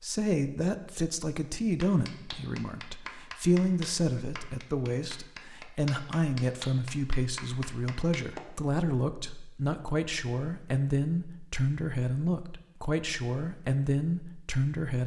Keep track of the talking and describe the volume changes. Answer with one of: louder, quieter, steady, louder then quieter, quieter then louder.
steady.